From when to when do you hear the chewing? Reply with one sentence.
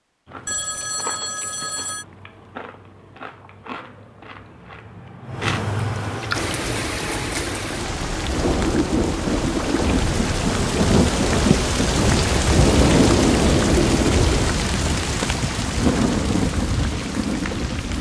You can hear the chewing from 0.2 to 6.5 s.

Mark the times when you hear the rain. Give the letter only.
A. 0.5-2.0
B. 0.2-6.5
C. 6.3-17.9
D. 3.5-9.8
C.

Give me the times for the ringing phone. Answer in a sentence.
The ringing phone can be heard from 0.5 to 2.0 s.